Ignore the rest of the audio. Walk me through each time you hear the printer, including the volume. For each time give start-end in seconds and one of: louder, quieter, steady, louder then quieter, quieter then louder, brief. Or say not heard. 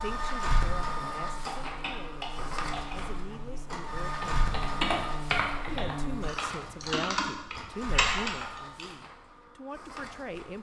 0.0-10.5 quieter.